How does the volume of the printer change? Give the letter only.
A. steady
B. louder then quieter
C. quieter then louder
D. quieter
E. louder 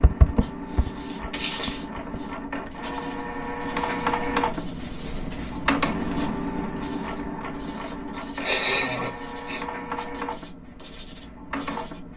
B.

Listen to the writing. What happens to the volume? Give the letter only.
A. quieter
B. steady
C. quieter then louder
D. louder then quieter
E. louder
A.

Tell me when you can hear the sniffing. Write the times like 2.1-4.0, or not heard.
8.4-9.6.